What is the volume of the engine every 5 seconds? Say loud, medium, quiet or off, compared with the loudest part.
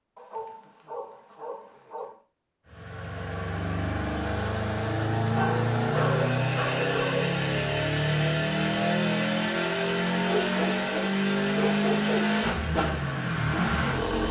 medium, loud, loud.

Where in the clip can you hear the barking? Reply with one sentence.
You can hear the barking from 0.1 to 2.1 s, from 5.3 to 7.4 s and from 10.3 to 12.3 s.